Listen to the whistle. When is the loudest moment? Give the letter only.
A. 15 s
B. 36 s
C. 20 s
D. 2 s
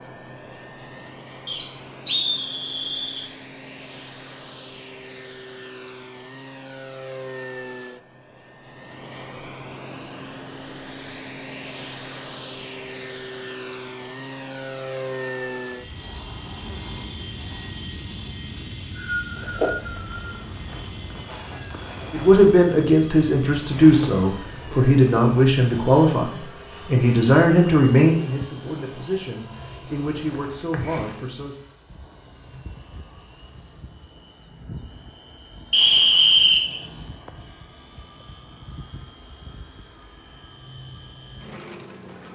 B.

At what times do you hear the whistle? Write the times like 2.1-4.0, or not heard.
1.4-3.2, 18.6-20.4, 35.7-36.8.